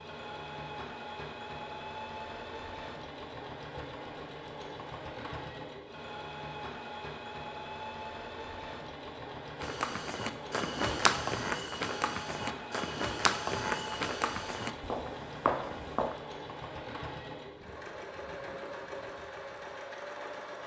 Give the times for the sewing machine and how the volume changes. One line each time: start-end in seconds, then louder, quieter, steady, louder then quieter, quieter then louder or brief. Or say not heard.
0.0-20.6 steady.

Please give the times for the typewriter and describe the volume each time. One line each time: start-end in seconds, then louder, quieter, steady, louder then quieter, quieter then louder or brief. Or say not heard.
not heard.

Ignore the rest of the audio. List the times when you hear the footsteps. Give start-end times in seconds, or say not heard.
9.6-16.1.